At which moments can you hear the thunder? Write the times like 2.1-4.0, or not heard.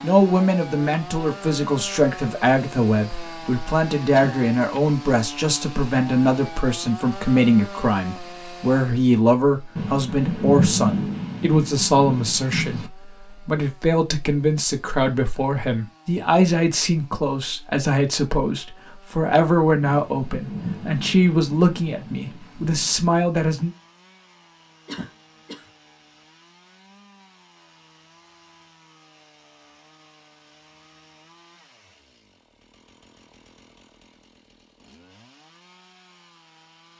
9.8-12.9, 19.9-22.9.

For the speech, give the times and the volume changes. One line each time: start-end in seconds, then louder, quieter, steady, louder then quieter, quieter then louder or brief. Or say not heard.
0.0-23.7 steady.